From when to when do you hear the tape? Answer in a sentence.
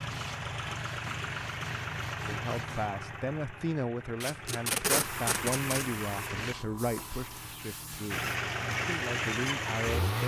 You can hear the tape from 4.2 to 5.8 s.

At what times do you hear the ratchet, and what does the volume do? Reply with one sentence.
The ratchet can't be heard in this clip.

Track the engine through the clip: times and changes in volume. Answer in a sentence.
The engine can be heard from 0.0 to 6.5 s, getting quieter then louder; and briefly from 8.1 to 10.2 s.